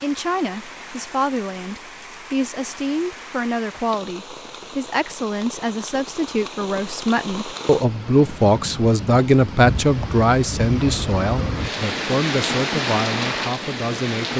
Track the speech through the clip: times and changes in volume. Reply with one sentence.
The speech can be heard from 0.0 to 14.3 s, getting louder then quieter.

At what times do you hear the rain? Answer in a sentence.
The rain can be heard from 0.0 to 14.3 s.